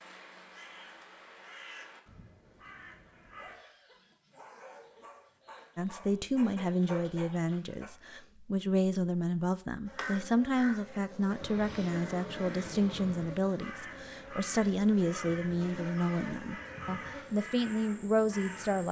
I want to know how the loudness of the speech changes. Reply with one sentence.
The volume of the speech stays about the same.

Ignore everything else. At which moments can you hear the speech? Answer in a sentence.
The speech can be heard from 5.8 to 18.8 s.